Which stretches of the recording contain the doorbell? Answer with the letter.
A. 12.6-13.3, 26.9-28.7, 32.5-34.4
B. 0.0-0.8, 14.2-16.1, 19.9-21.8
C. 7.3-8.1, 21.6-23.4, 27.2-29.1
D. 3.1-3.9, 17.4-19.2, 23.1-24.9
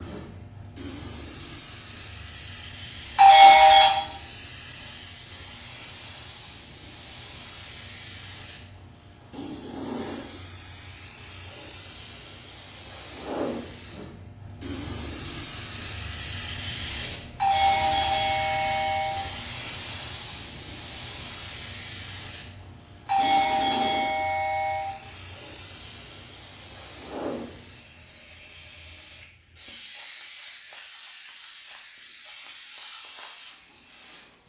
D.